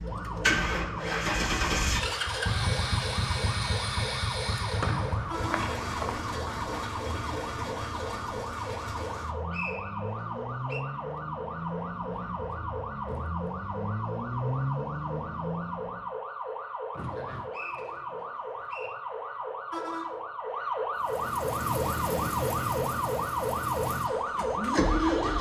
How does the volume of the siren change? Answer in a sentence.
The loudness of the siren goes up.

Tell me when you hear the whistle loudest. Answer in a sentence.
The volume of the whistle peaks at 5 seconds.